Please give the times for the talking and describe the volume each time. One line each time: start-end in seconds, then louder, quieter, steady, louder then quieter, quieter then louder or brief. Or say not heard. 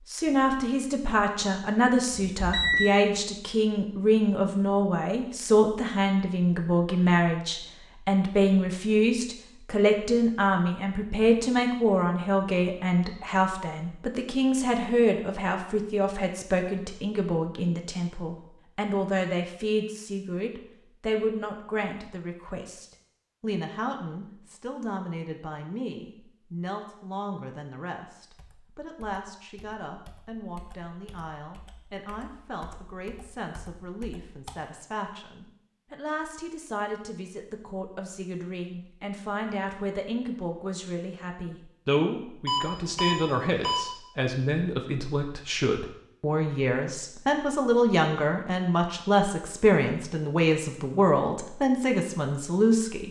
0.1-53.0 quieter then louder.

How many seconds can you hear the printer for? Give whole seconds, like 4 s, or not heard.
not heard.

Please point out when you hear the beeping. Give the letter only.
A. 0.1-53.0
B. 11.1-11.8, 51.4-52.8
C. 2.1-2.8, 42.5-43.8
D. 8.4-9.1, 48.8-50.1
C.